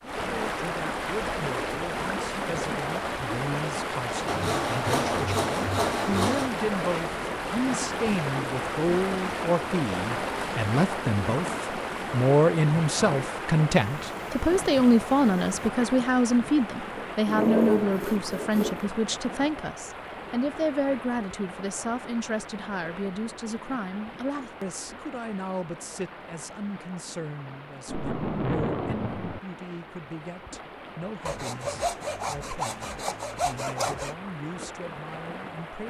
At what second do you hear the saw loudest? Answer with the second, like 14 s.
18 s.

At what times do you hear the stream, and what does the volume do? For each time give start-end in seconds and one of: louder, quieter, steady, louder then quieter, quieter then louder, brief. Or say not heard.
0.0-35.8 quieter.